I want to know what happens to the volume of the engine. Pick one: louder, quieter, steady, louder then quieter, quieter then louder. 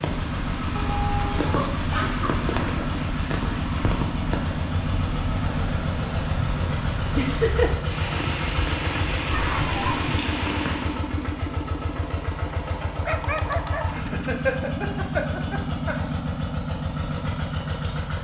steady.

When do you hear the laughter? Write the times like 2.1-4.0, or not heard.
2.0-3.0, 7.2-7.8, 13.8-15.9.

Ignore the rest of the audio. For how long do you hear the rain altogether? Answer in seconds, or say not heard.
11 s.